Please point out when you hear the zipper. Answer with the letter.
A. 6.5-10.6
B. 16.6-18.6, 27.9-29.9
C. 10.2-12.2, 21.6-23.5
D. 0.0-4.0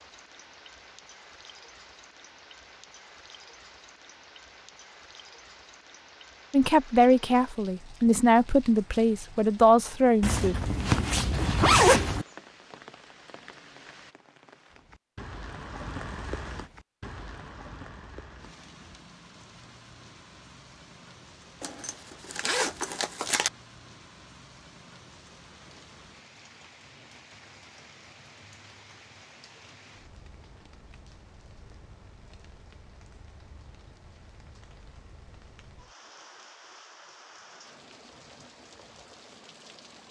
C.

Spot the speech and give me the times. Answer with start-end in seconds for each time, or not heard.
6.5-10.6.